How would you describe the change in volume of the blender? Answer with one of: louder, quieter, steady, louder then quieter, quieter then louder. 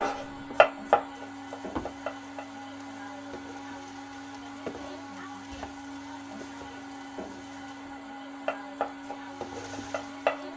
steady.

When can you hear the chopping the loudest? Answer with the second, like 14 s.
1 s.